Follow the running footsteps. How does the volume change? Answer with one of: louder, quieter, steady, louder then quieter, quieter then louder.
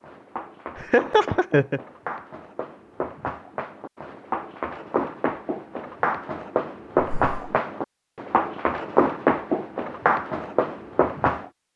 louder.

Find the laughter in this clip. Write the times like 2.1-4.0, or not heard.
0.8-1.8, 7.0-7.5.